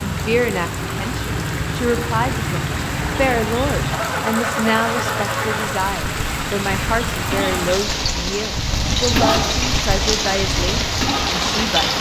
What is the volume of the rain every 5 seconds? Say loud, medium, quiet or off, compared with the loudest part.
medium, loud, loud.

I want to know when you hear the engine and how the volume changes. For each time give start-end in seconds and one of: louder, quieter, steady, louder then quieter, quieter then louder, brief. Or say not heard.
0.0-11.9 steady.